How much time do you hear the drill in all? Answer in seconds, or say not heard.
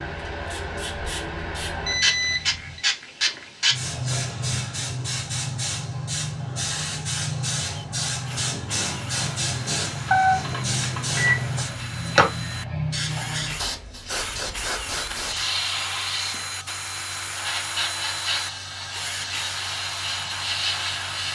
14 s.